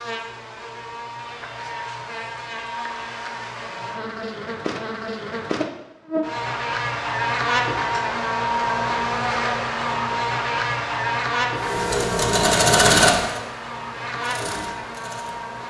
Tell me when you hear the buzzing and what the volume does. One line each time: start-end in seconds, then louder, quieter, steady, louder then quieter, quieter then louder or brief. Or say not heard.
0.0-15.6 louder then quieter.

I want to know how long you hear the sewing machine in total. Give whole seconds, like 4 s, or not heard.
4 s.